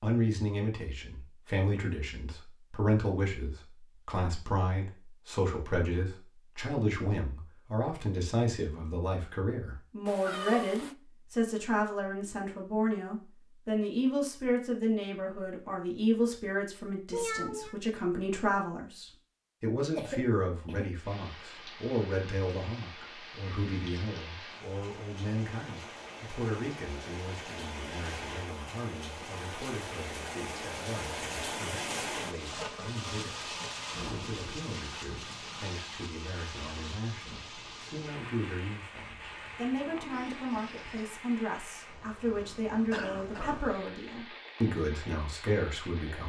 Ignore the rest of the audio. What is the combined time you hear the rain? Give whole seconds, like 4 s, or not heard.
25 s.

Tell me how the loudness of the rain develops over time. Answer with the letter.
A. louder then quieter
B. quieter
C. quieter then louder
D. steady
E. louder
A.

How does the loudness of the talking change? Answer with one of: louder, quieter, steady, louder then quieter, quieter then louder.
quieter then louder.